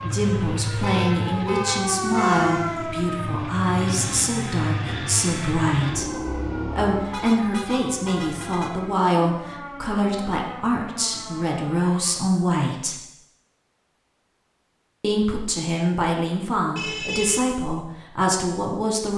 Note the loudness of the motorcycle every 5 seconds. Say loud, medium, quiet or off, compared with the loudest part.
loud, loud, off, off.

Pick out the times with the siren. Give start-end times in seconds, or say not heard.
0.0-12.2.